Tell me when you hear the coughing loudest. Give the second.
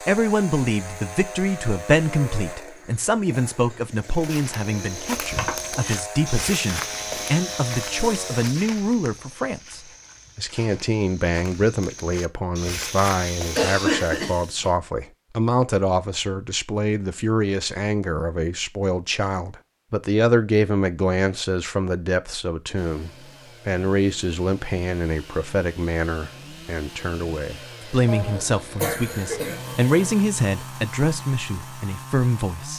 14 s.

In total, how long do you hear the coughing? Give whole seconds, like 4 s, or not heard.
4 s.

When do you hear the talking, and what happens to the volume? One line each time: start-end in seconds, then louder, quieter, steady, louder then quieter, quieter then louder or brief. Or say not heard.
0.0-32.7 steady.